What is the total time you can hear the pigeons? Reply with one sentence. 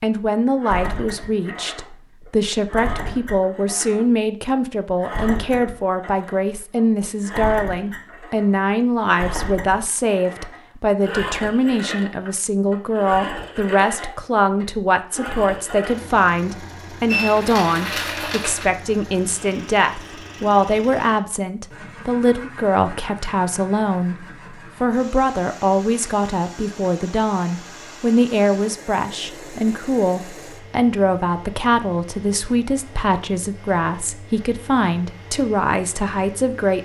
The pigeons can't be heard in this clip.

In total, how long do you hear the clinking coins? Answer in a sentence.
You can hear the clinking coins for 2 seconds altogether.